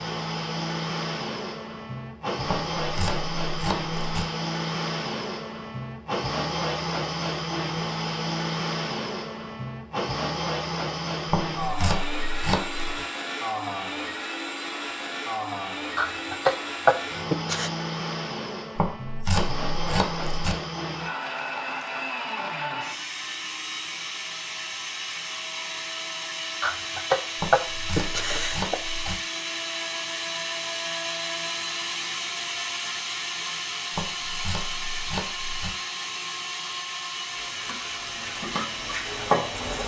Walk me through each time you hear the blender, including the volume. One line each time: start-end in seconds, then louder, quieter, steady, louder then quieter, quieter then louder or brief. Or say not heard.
0.0-39.8 steady.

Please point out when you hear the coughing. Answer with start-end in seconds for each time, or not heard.
15.9-17.7, 26.6-29.1.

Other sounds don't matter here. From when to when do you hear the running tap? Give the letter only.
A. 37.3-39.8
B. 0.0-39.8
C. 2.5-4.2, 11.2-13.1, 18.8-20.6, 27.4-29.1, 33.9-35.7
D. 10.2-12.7
A.